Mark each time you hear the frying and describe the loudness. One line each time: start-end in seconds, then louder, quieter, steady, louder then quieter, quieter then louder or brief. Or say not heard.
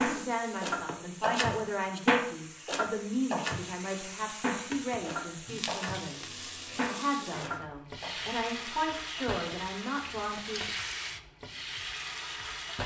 0.0-12.8 louder.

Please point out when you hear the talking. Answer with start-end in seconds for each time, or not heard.
0.0-6.2, 6.8-10.7.